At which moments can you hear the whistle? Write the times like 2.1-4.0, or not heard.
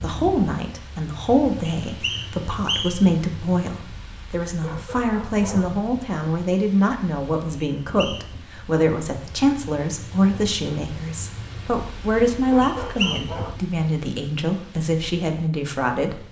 1.8-3.1, 7.8-8.3, 12.6-13.3.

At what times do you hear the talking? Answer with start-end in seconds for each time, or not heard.
0.0-16.2.